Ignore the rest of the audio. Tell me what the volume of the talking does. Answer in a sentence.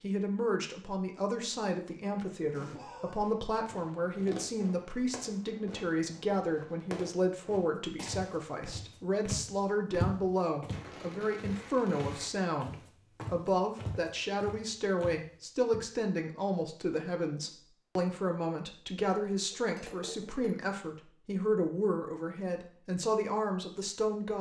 The volume of the talking stays about the same.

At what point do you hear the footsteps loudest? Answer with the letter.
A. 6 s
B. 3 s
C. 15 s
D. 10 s
D.